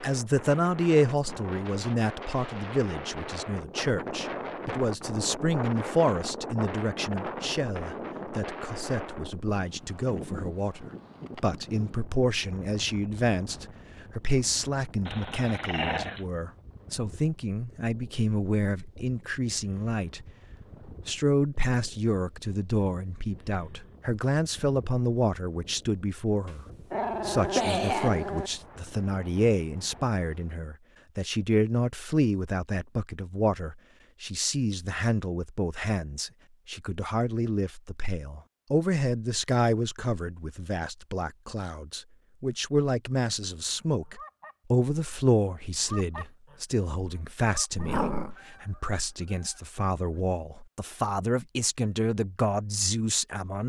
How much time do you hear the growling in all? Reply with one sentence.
You can hear the growling for 4 seconds altogether.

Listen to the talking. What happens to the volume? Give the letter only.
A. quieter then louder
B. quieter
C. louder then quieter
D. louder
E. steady
E.